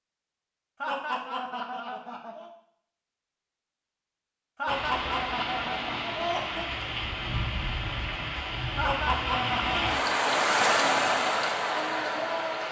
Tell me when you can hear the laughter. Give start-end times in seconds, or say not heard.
0.8-2.5, 4.5-6.7, 8.8-9.9.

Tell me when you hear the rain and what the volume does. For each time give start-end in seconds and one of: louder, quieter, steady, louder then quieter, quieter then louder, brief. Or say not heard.
4.7-12.6 louder.